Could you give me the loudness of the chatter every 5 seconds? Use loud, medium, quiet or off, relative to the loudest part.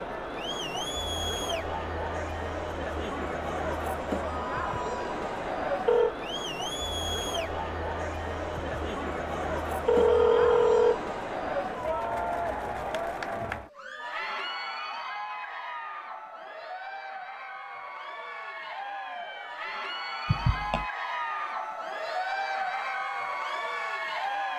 loud, loud, loud, medium, loud.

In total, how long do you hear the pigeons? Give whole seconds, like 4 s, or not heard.
not heard.